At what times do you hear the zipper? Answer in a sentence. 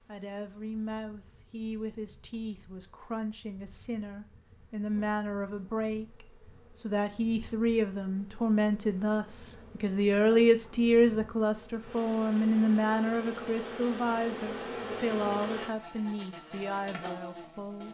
You can't hear the zipper here.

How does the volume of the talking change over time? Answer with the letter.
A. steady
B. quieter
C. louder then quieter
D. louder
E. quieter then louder
C.